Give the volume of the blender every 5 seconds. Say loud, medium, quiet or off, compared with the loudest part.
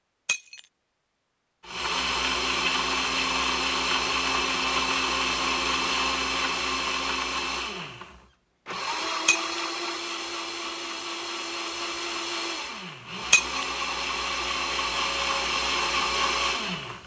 loud, loud, medium, loud.